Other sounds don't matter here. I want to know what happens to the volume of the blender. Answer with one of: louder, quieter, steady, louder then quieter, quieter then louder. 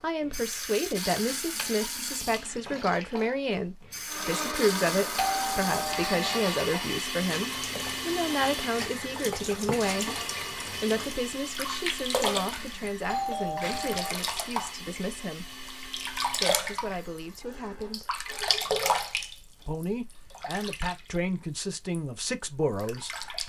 quieter.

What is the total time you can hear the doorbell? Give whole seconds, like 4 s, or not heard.
2 s.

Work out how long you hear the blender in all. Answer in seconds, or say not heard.
15 s.